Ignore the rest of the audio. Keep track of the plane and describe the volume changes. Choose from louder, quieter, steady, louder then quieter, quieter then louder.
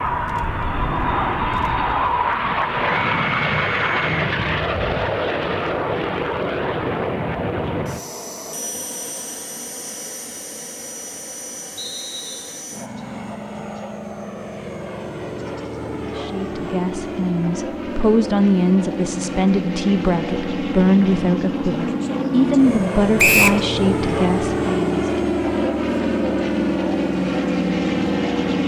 quieter then louder.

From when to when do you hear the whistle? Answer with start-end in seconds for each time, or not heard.
2.9-4.2, 11.8-12.6, 23.1-23.6.